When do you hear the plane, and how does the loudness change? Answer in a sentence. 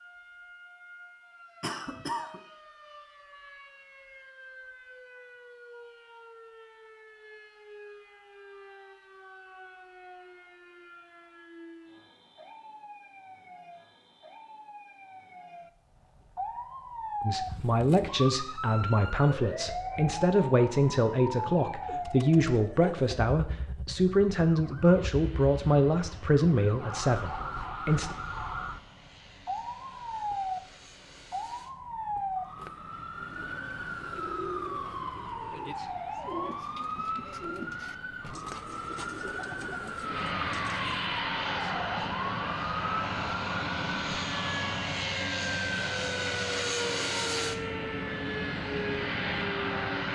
You can hear the plane from 25.0 to 50.0 s, getting louder.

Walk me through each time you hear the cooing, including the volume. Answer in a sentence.
You can hear the cooing from 33.4 to 41.1 s, at a steady volume.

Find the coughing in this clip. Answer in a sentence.
The coughing can be heard from 1.6 to 2.4 s.